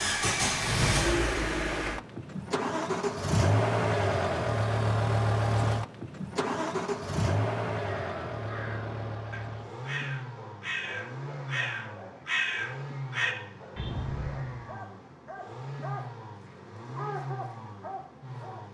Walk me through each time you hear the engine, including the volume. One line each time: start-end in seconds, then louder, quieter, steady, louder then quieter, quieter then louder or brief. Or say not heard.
0.0-18.7 quieter.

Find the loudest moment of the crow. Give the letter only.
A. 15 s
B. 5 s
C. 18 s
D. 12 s
D.